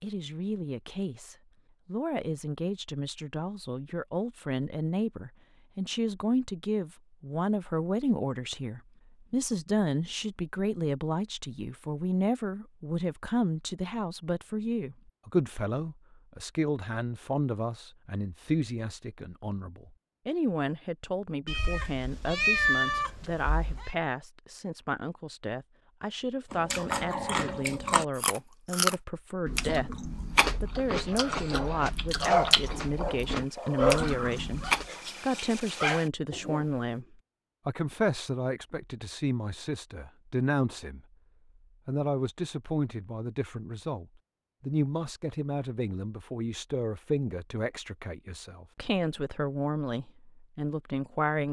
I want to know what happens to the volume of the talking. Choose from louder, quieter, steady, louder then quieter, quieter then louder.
steady.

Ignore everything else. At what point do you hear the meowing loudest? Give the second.
23 s.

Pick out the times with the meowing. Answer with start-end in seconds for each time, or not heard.
21.4-23.9.